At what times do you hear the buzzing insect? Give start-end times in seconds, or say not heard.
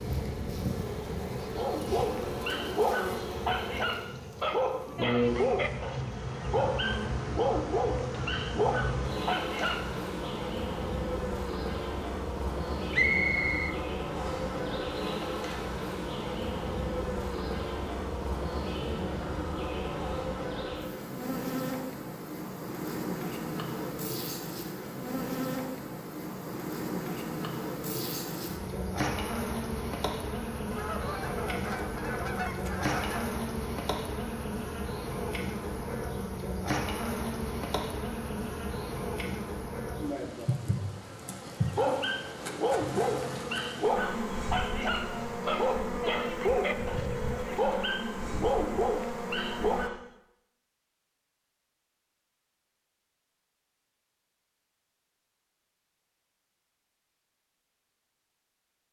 0.0-49.9.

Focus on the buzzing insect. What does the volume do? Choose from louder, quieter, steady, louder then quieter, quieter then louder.
steady.